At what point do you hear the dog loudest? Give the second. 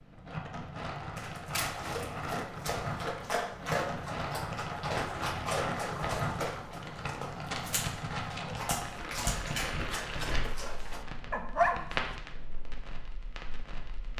12 s.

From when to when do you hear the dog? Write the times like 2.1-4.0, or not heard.
1.1-12.0.